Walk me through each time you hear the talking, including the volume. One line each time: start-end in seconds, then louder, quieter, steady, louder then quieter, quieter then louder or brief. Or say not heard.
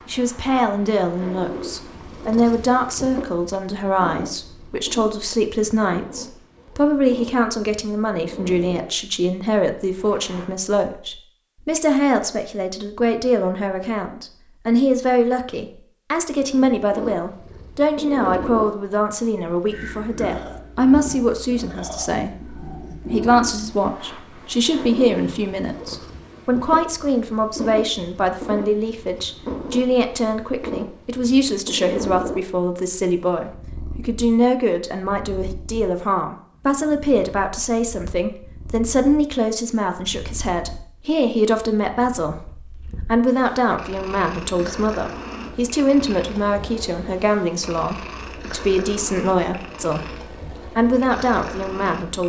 0.1-52.2 steady.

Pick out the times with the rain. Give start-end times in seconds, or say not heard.
not heard.